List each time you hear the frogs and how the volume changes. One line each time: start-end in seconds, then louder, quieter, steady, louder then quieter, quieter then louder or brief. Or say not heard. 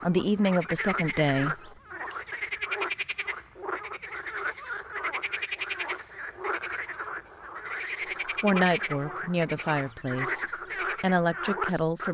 0.0-12.1 steady.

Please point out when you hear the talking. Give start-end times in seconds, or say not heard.
0.0-1.7, 8.4-12.1.